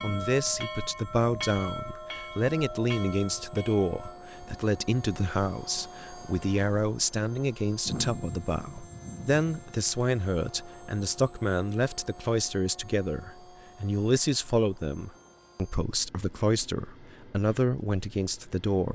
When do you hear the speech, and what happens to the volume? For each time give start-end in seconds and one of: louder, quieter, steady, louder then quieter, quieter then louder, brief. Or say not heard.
0.0-18.9 steady.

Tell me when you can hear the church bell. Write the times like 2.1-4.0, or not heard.
0.0-4.2.